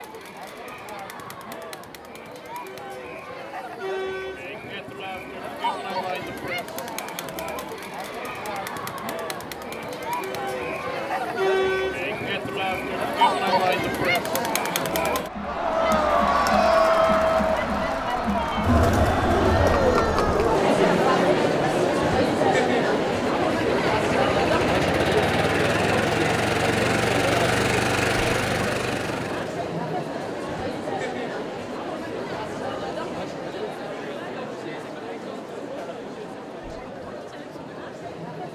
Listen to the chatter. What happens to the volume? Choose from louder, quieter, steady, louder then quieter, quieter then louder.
louder then quieter.